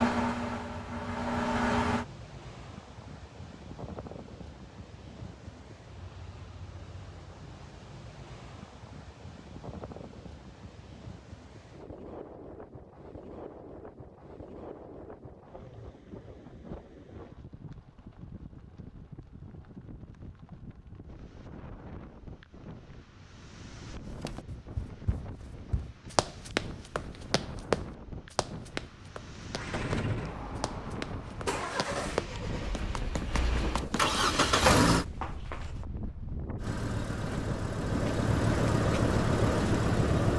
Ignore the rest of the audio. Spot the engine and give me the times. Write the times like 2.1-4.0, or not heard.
0.0-2.0, 29.6-35.0, 36.6-40.3.